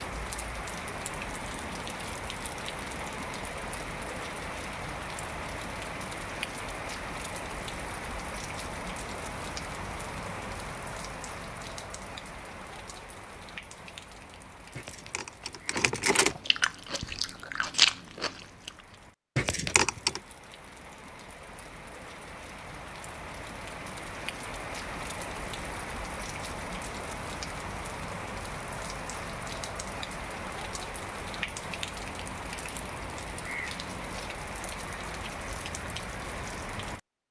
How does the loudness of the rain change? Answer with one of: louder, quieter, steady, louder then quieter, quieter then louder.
quieter then louder.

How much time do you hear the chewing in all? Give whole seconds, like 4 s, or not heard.
3 s.